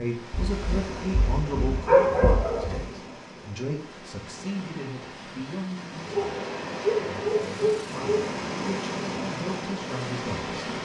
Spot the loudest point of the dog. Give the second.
2 s.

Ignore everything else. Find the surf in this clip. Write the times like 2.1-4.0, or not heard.
0.0-10.7.